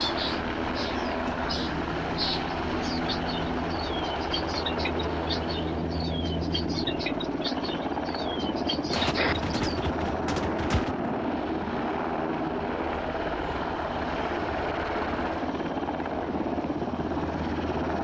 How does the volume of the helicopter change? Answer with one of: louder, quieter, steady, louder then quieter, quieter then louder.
steady.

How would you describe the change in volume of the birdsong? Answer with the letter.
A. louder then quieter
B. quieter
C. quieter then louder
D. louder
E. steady
E.